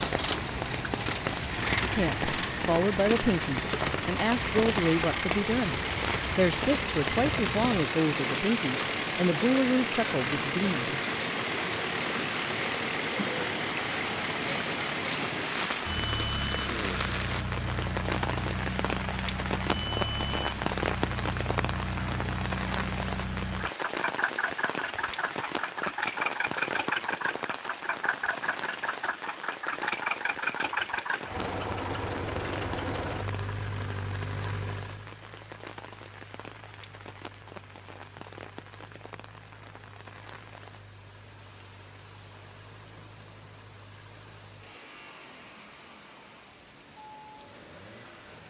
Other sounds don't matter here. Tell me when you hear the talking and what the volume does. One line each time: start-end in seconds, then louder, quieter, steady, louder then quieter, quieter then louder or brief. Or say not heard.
1.8-11.0 steady.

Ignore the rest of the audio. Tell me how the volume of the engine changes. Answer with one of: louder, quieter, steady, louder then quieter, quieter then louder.
quieter.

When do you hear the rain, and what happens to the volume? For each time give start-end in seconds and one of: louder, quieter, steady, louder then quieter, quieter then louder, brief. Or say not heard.
0.0-48.4 quieter.